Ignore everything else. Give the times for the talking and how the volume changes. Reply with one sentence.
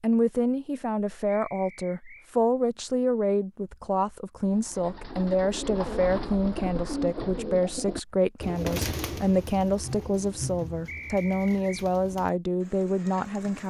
The talking can be heard from 0.0 to 13.6 s, at a steady volume.